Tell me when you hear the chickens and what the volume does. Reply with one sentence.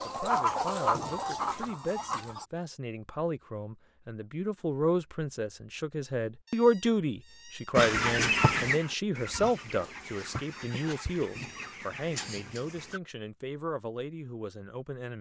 You can hear the chickens briefly from 0.0 to 2.5 s; and from 7.8 to 13.0 s, getting quieter.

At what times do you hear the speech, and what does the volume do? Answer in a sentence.
The speech can be heard from 0.0 to 15.1 s, getting louder then quieter.